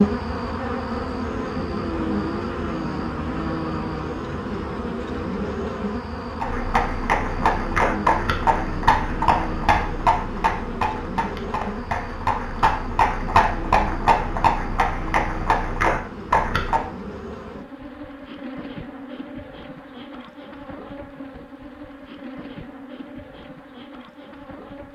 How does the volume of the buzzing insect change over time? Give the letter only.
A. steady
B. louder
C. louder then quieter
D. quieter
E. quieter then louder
D.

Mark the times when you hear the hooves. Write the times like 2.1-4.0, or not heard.
6.4-16.8.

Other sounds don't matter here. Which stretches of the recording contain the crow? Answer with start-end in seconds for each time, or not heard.
not heard.